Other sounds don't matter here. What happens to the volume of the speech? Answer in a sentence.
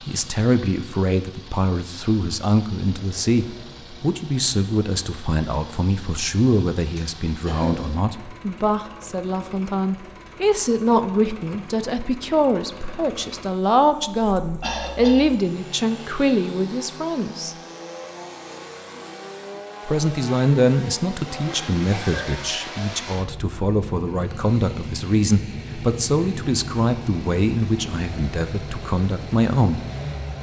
The volume of the speech stays about the same.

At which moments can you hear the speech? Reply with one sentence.
The speech can be heard from 0.1 to 17.6 s and from 19.9 to 29.8 s.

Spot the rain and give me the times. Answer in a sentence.
The rain can't be heard in this clip.